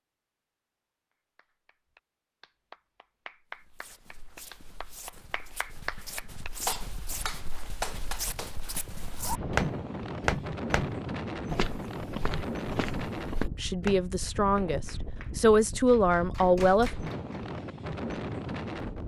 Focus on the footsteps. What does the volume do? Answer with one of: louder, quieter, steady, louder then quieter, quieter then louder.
louder then quieter.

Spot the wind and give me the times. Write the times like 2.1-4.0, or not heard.
8.8-19.0.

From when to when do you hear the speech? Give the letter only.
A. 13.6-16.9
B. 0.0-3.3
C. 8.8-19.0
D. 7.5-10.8
A.